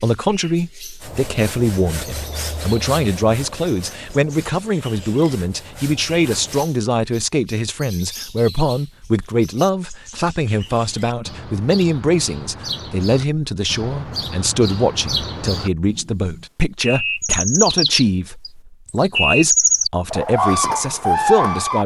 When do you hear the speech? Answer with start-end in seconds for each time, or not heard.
0.0-21.8.